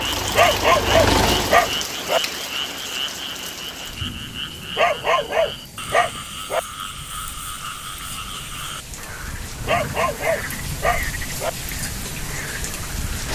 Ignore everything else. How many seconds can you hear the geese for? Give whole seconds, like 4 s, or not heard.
not heard.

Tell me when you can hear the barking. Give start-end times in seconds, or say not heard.
0.3-2.2, 4.8-6.6, 9.7-11.5.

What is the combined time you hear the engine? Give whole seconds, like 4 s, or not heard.
2 s.